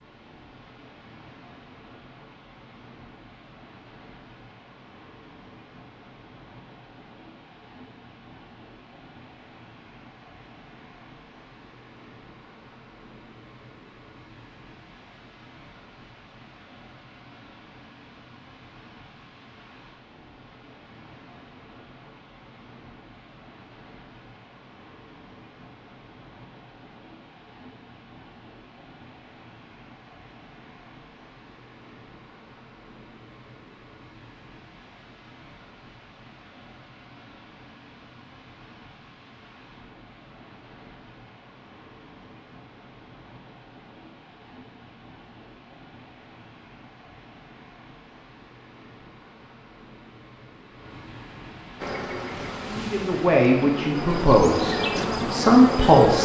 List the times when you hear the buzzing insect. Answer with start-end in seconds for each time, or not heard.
51.8-56.2.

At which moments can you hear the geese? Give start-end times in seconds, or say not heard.
not heard.